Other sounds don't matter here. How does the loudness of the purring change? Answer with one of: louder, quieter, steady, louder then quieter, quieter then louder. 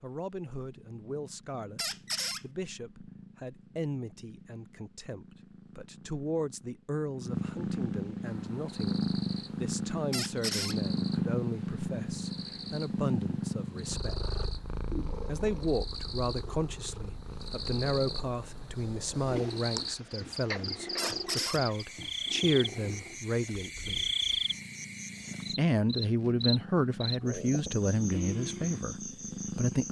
louder then quieter.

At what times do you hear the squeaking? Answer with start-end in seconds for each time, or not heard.
1.8-2.5, 10.1-10.8, 20.9-21.6.